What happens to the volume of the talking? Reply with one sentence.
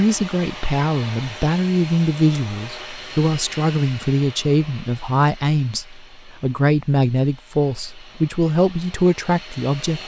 The loudness of the talking stays about the same.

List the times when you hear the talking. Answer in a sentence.
The talking can be heard from 0.0 to 10.0 s.